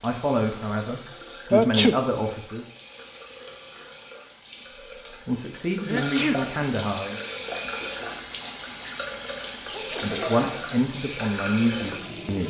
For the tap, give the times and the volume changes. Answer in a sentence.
You can hear the tap from 0.0 to 12.4 s, getting louder.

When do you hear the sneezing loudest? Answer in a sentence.
The volume of the sneezing peaks at 2 seconds.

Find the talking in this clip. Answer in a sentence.
The talking can be heard from 0.0 to 2.6 s, from 5.2 to 7.2 s and from 10.0 to 12.4 s.